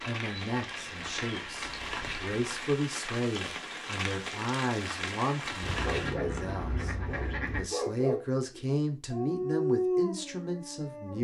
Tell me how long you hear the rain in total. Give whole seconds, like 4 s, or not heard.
6 s.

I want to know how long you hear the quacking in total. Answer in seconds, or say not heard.
5 s.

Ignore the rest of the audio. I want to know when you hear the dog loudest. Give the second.
10 s.